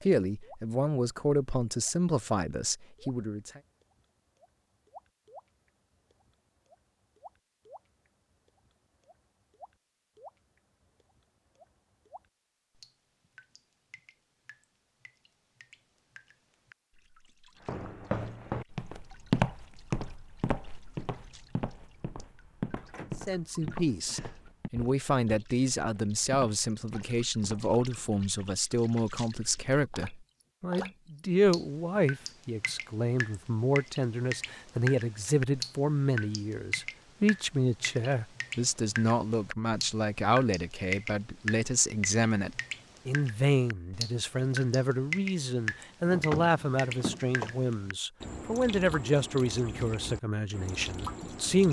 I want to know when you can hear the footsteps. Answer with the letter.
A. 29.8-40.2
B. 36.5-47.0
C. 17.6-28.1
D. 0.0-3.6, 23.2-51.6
C.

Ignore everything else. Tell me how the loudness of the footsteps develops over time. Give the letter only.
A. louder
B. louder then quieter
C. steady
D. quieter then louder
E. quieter
D.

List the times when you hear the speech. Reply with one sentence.
You can hear the speech from 0.0 to 3.6 s and from 23.2 to 51.6 s.